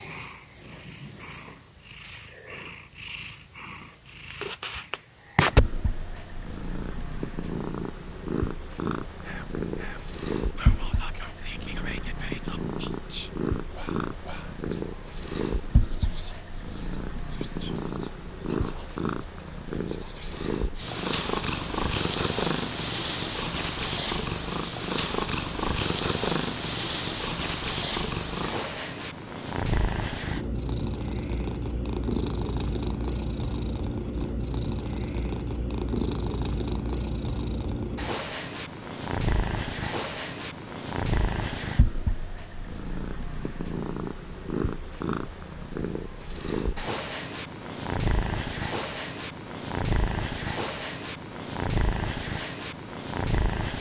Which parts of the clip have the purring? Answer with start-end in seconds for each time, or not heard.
0.0-53.7.